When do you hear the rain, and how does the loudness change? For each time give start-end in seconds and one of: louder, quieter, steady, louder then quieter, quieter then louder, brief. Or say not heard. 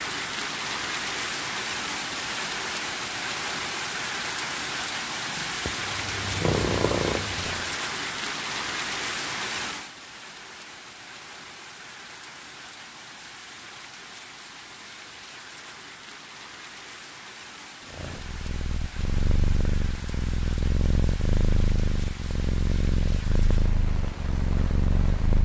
0.0-25.3 quieter.